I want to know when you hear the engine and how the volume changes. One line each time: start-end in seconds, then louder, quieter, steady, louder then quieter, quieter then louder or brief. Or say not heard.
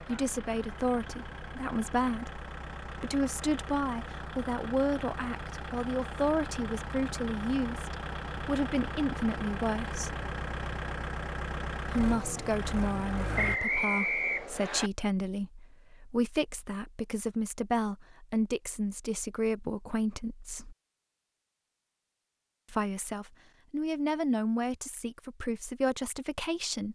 0.0-13.6 louder.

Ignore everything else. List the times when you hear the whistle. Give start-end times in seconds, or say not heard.
13.3-14.9.